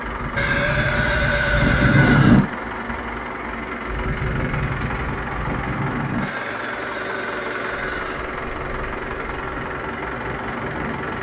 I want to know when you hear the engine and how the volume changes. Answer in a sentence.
You can hear the engine from 0.0 to 11.1 s, at a steady volume.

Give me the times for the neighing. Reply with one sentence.
You can hear the neighing from 0.3 to 2.4 s and from 6.2 to 8.2 s.